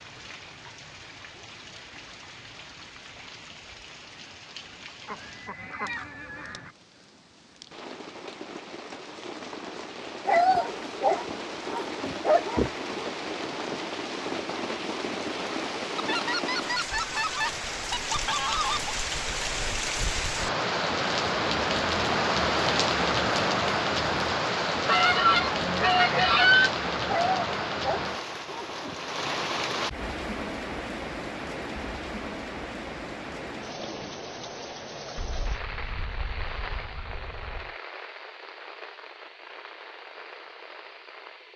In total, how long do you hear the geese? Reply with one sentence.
The geese can be heard for 9 seconds in total.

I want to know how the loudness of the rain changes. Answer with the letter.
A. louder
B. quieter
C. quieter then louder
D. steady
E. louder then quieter
E.